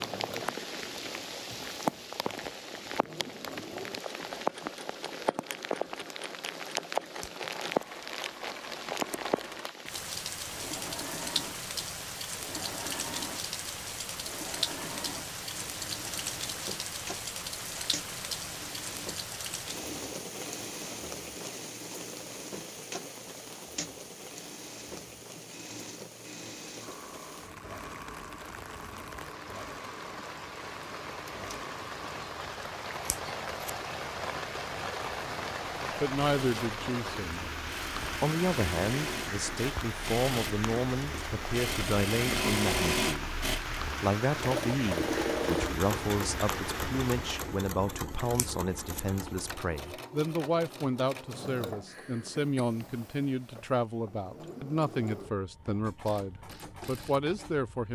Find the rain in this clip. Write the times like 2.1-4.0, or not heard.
0.0-47.6.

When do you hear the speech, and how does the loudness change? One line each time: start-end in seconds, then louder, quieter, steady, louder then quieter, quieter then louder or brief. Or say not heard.
35.2-57.9 steady.